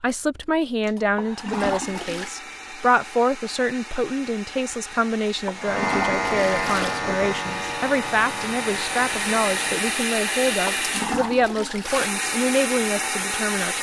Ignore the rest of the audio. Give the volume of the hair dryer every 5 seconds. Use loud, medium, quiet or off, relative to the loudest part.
quiet, loud, loud.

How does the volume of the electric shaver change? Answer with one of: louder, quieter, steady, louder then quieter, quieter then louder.
quieter.